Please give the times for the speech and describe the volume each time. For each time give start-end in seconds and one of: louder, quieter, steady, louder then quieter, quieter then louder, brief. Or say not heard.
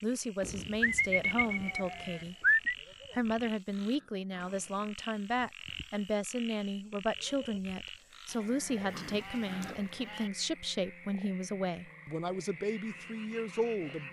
0.0-2.4 brief
3.1-14.0 steady.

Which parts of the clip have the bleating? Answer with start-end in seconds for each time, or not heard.
0.4-2.8, 8.3-10.3.